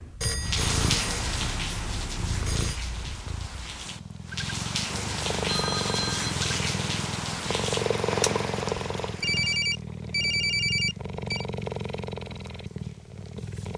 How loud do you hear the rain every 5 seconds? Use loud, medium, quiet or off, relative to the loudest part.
loud, loud, off.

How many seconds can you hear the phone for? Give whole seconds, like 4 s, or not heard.
6 s.